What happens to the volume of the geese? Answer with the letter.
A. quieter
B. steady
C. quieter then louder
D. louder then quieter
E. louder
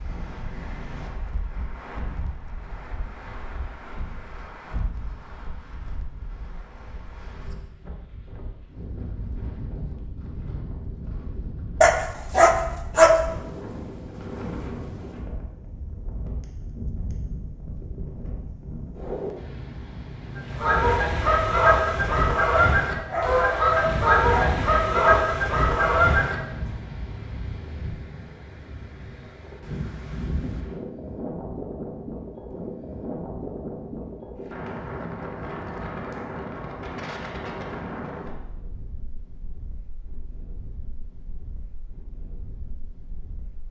B.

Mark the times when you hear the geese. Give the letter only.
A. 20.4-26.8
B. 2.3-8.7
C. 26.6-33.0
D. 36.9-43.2
A.